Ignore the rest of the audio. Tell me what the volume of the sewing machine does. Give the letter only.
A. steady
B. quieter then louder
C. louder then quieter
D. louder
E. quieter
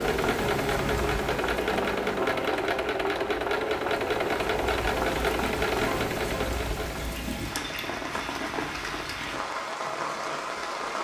A.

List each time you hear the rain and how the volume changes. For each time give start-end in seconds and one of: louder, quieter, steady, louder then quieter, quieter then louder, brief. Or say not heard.
0.0-10.9 quieter then louder.